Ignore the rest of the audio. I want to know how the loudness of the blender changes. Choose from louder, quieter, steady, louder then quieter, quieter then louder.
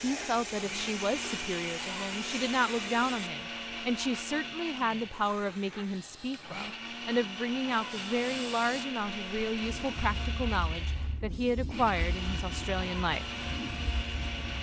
steady.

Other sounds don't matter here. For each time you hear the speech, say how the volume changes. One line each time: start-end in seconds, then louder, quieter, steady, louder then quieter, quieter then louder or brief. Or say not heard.
0.0-13.2 steady.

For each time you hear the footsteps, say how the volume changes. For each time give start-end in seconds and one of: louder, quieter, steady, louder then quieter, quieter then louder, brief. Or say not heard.
not heard.